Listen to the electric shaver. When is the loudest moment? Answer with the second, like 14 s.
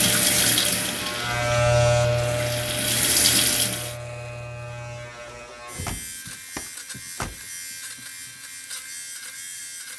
2 s.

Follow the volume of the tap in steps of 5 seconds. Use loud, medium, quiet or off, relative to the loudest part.
loud, off.